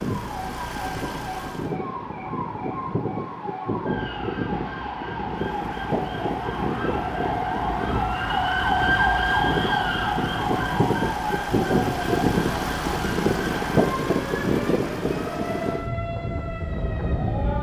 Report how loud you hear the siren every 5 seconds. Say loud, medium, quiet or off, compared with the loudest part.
medium, loud, medium, medium.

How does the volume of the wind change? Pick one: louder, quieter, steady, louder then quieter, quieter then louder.
louder.